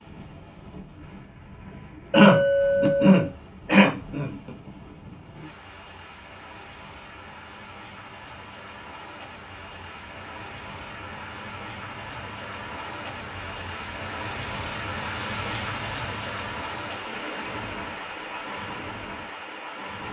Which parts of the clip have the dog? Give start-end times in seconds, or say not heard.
not heard.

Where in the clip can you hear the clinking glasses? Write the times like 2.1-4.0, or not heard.
2.1-3.3, 17.1-18.4.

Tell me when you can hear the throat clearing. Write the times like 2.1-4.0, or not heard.
2.1-4.5.